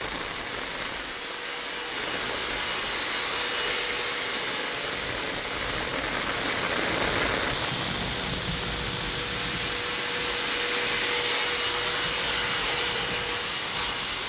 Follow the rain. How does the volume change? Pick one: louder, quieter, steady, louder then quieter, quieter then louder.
louder then quieter.